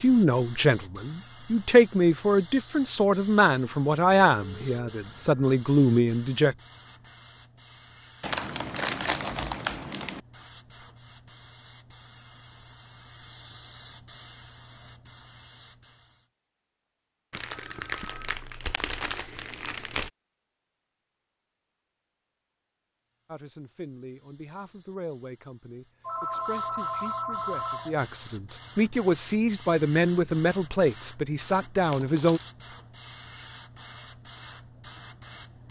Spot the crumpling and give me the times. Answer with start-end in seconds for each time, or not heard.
8.2-10.2, 17.3-20.1, 31.9-32.5.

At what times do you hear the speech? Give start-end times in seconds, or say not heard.
0.0-6.5, 23.2-32.4.